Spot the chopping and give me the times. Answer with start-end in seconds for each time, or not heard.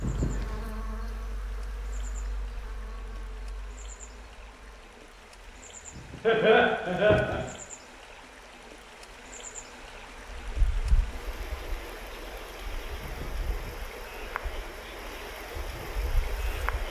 not heard.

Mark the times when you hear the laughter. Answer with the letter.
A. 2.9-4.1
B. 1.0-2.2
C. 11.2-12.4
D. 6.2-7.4
D.